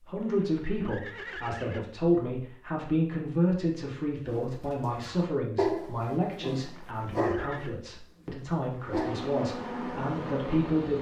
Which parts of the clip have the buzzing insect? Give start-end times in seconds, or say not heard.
8.8-10.9.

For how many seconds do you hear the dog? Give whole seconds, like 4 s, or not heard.
5 s.